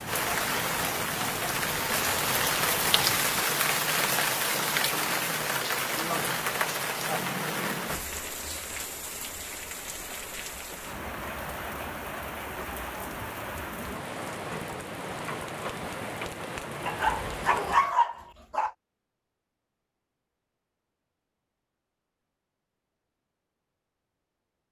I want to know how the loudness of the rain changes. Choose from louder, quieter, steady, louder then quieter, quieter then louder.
quieter.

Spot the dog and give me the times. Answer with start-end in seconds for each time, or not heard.
16.9-18.7.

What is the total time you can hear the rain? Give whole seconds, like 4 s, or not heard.
18 s.